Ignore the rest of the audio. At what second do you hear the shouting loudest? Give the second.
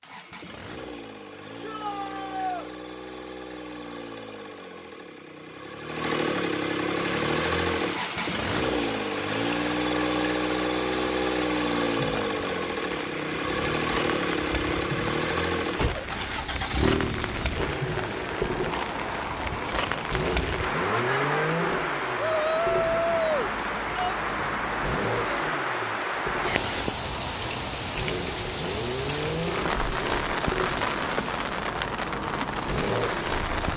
23 s.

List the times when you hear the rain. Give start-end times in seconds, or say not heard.
7.0-33.7.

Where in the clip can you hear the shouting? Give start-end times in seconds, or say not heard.
1.6-2.7, 22.1-24.1.